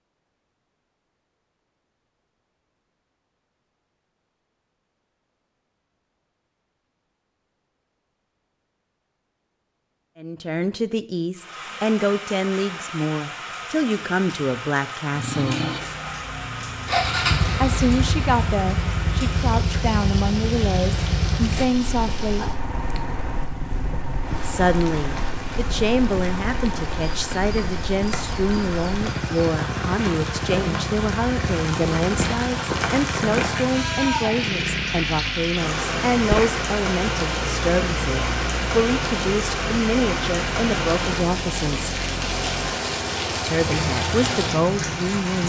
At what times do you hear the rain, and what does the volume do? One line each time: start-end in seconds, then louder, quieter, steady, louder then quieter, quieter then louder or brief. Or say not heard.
11.3-45.4 louder.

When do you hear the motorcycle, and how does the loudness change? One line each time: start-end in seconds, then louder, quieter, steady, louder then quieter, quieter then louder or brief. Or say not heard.
15.2-45.4 quieter.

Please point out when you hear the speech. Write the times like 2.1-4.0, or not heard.
10.2-15.6, 17.6-22.5, 24.4-42.0, 43.5-45.4.